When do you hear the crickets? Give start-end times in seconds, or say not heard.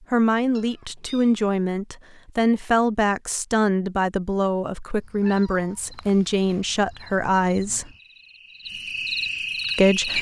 5.0-10.1.